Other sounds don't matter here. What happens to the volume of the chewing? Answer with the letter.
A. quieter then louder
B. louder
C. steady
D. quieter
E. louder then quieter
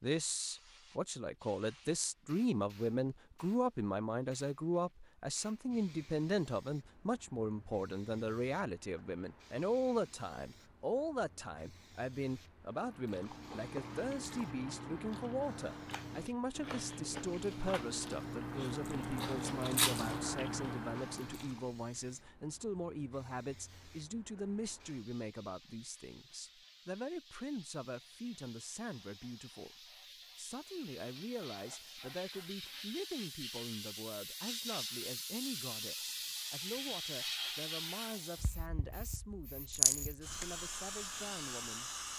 B.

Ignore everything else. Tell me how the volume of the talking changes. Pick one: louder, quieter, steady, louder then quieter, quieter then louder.
quieter.